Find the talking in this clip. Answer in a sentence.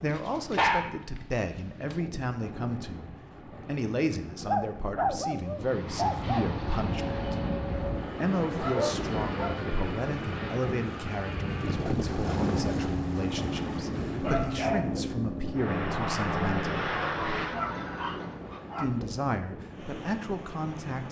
The talking can be heard from 0.0 to 7.3 s, from 8.2 to 16.9 s and from 18.8 to 21.0 s.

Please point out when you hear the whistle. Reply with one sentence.
You can't hear the whistle here.